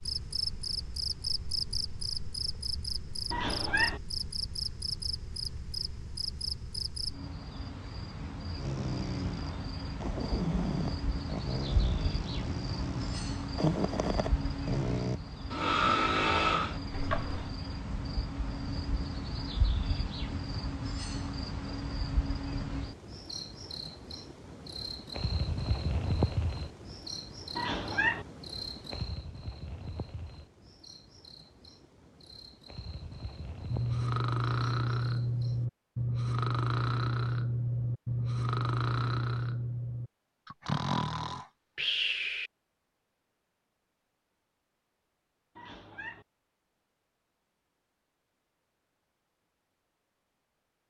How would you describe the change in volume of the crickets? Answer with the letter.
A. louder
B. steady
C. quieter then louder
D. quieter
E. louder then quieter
D.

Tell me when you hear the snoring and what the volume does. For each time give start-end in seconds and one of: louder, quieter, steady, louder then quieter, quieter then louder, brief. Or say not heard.
8.6-17.5 louder
33.7-42.5 steady.